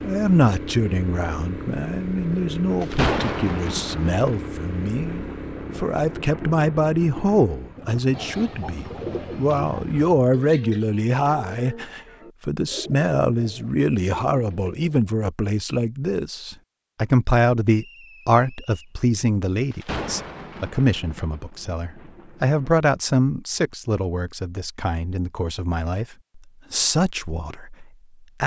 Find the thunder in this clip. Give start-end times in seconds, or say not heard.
2.8-7.5, 19.7-22.8.